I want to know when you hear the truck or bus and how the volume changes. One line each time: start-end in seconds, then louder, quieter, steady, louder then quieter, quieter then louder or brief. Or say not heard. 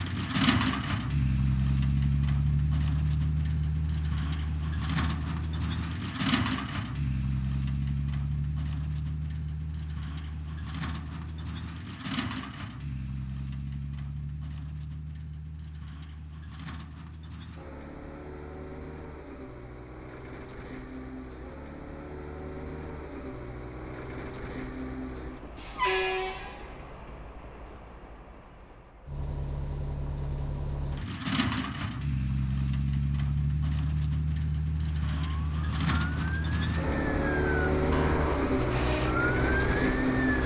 0.0-40.4 quieter then louder.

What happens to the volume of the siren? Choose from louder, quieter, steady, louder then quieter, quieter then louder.
louder.